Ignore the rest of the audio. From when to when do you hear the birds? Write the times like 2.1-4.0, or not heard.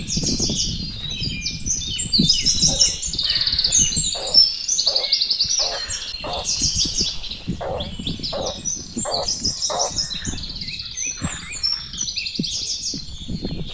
0.0-13.6.